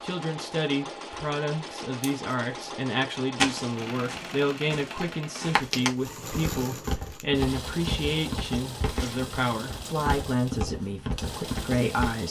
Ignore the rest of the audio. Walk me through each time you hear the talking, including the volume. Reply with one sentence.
The talking can be heard from 0.0 to 12.2 s, at a steady volume.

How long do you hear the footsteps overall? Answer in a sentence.
The footsteps can be heard for 9 seconds in total.